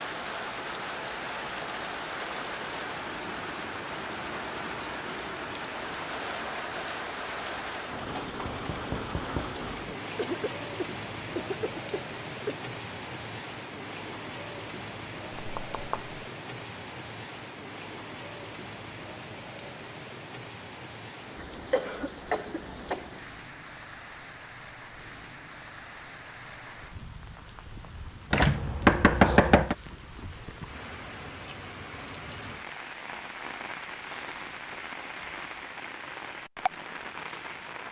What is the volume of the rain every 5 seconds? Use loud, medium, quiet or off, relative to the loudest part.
loud, loud, loud, medium, medium, medium, medium, loud.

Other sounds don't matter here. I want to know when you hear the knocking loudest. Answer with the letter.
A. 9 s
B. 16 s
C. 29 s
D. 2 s
C.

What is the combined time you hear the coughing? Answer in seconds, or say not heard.
4 s.